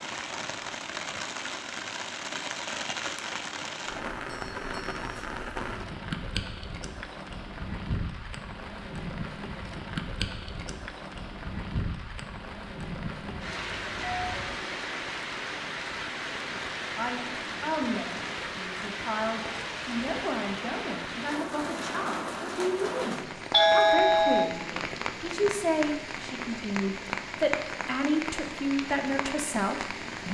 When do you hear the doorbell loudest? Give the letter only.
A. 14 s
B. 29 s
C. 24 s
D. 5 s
C.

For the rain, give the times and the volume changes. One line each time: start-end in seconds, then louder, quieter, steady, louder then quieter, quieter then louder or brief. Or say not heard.
0.0-30.3 steady.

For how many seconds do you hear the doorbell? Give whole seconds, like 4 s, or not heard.
3 s.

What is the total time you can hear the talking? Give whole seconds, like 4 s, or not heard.
13 s.